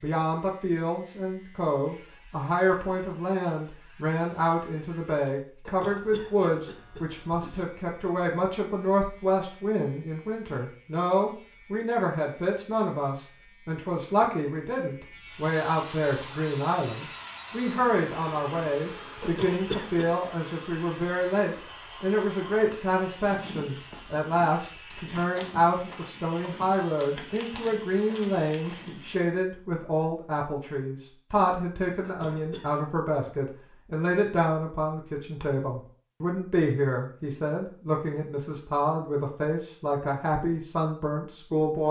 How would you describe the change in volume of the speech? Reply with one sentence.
The loudness of the speech stays about the same.